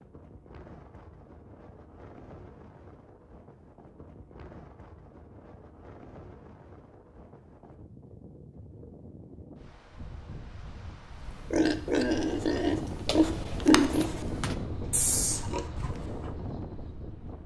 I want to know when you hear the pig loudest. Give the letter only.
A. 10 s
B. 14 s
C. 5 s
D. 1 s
B.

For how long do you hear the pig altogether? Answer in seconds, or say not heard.
5 s.